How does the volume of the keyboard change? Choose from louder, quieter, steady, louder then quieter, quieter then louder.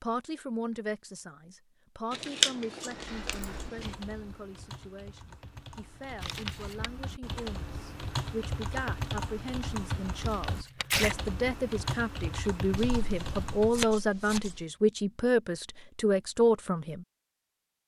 louder.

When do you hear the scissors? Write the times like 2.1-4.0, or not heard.
2.1-3.9, 12.8-14.7.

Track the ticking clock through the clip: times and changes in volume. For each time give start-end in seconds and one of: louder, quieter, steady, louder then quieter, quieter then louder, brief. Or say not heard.
not heard.